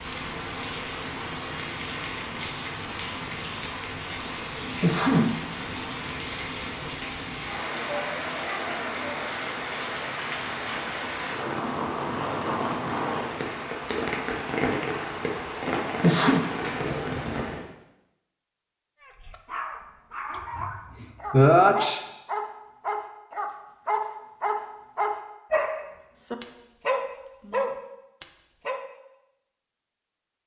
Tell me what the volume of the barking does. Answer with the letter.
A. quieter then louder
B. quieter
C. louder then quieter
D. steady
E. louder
E.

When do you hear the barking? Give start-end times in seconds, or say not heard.
19.0-28.8.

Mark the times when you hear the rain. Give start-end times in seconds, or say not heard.
0.0-17.6.